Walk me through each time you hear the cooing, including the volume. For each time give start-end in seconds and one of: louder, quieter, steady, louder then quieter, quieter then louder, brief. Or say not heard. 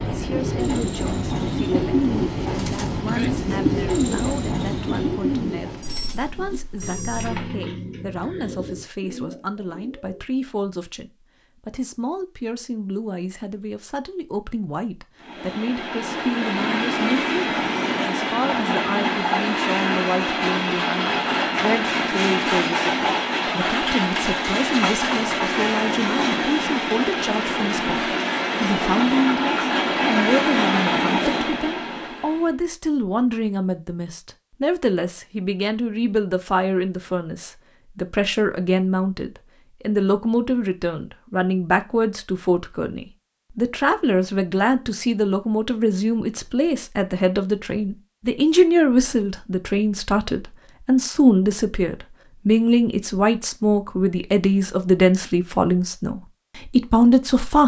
0.1-10.2 quieter.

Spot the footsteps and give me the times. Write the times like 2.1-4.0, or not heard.
not heard.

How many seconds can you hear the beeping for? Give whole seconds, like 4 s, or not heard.
2 s.